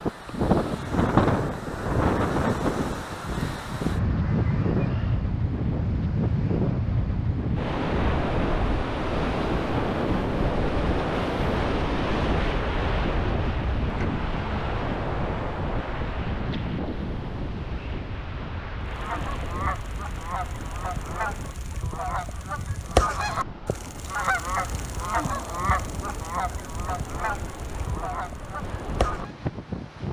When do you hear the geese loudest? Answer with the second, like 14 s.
23 s.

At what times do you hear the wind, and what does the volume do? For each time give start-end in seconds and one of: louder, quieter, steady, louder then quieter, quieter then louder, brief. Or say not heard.
0.0-30.0 quieter.